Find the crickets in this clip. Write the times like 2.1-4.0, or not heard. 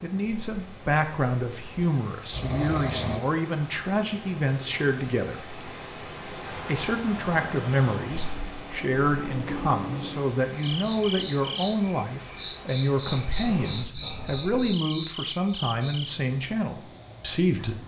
0.0-17.8.